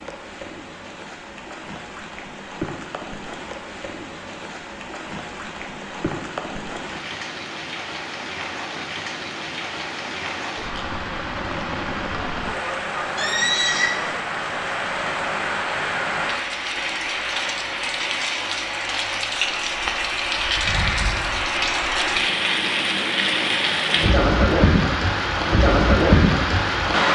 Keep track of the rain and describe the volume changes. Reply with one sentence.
The volume of the rain goes up.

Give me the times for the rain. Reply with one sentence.
The rain can be heard from 0.0 to 27.1 s.